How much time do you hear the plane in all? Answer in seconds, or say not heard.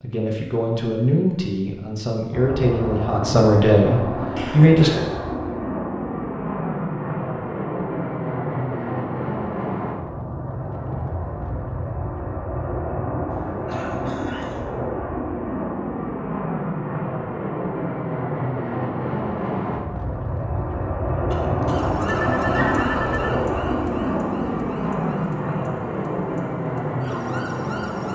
26 s.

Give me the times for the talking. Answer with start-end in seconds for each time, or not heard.
0.0-4.9.